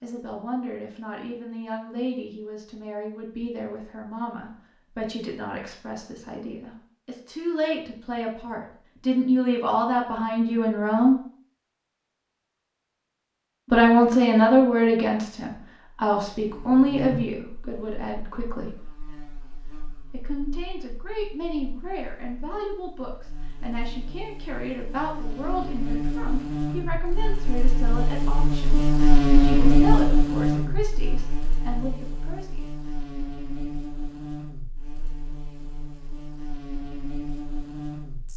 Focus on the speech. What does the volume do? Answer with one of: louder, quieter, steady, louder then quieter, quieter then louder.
louder then quieter.